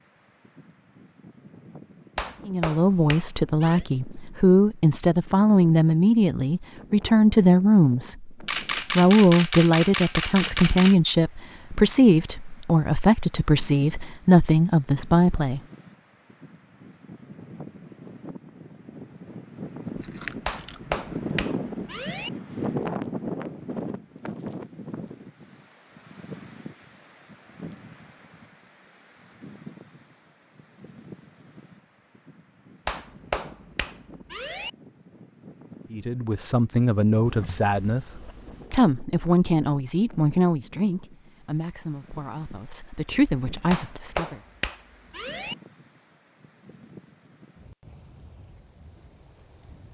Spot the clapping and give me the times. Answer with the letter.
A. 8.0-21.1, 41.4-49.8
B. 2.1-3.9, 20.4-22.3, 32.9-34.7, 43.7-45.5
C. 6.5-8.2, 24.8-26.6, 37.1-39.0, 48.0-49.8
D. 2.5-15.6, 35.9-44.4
B.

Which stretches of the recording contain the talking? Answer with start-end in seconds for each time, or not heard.
2.5-15.6, 35.9-44.4.